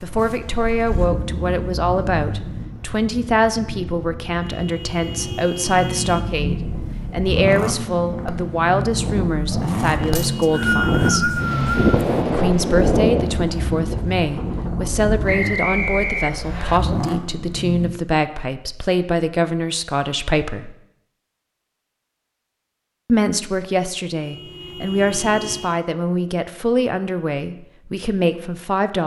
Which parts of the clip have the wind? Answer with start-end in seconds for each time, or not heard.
0.0-15.2.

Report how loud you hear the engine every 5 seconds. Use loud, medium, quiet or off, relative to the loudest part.
medium, loud, loud, loud, off, off.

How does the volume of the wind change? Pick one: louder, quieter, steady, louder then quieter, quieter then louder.
louder.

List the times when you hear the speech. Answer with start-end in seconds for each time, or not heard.
0.0-11.3, 12.2-20.8, 23.1-29.0.